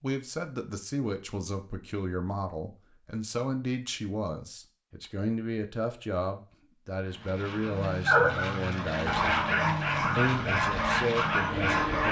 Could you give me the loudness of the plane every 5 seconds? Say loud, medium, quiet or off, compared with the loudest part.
off, loud, loud.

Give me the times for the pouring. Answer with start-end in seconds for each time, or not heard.
not heard.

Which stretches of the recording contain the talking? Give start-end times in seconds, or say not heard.
0.0-12.0.